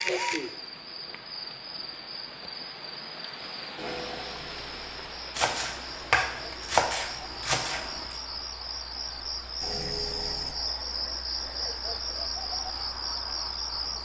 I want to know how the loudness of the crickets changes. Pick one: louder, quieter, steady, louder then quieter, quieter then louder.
louder.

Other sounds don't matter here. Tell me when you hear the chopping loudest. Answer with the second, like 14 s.
7 s.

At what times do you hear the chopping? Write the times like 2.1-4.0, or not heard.
5.3-8.2.